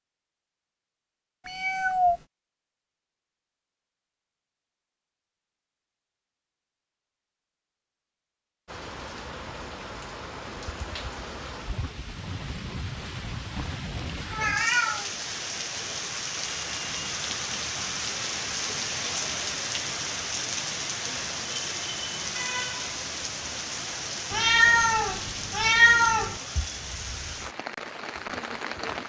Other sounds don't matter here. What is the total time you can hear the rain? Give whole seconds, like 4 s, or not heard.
20 s.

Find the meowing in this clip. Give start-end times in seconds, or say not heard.
1.4-2.2, 14.3-15.1, 24.3-26.4.